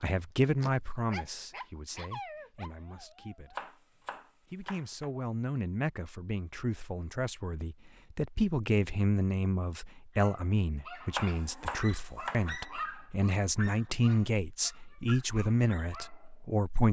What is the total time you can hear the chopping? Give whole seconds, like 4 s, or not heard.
3 s.